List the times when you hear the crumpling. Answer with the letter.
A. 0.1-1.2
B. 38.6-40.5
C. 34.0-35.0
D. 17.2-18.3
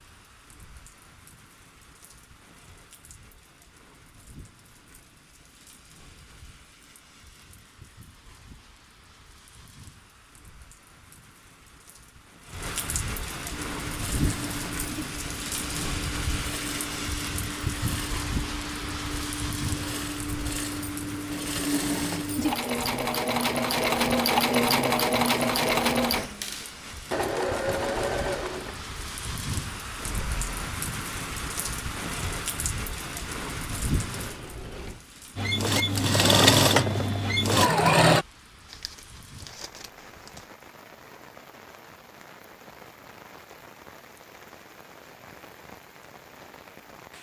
B.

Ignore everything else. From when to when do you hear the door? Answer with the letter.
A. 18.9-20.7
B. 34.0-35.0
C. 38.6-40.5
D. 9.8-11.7
B.